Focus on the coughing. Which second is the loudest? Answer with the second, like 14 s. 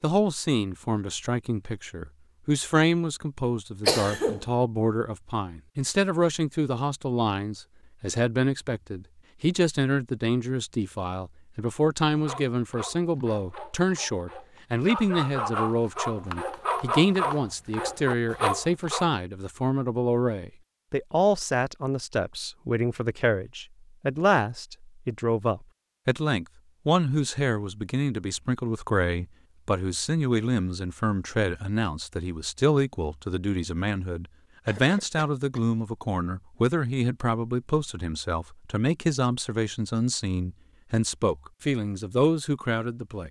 4 s.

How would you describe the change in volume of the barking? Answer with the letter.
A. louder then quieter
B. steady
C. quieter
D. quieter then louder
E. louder
E.